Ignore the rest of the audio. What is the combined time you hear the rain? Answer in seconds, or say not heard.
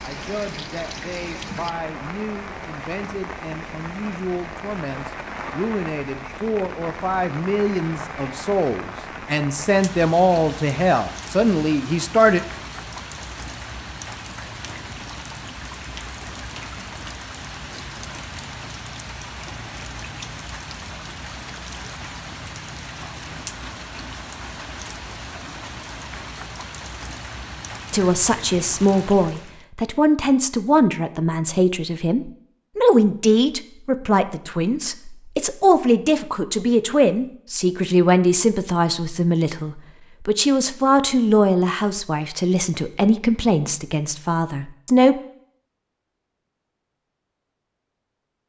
30 s.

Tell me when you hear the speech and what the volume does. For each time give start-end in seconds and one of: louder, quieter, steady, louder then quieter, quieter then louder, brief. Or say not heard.
0.0-12.4 louder
27.9-45.1 steady.